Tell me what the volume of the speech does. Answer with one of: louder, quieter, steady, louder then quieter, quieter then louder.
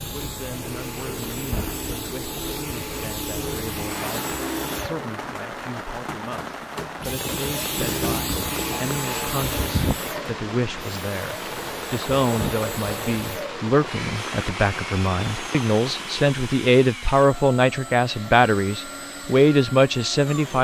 louder.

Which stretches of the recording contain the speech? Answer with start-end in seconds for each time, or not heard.
0.0-20.5.